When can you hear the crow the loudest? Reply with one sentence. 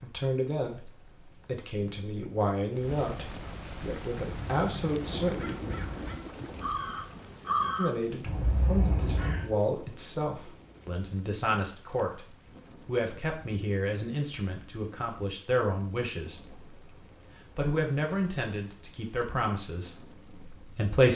The volume of the crow peaks at 8 seconds.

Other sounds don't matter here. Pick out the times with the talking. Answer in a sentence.
The talking can be heard from 0.0 to 5.6 s, from 7.8 to 12.2 s, from 12.8 to 16.6 s and from 17.6 to 21.1 s.